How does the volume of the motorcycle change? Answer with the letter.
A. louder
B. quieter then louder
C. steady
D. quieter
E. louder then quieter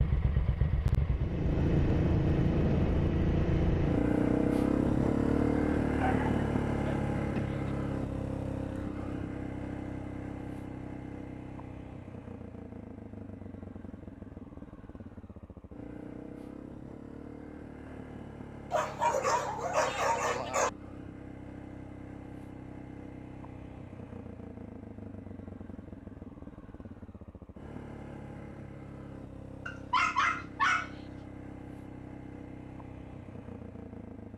D.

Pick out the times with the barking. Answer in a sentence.
The barking can be heard from 6.0 to 7.7 s, from 18.7 to 20.7 s and from 29.6 to 30.9 s.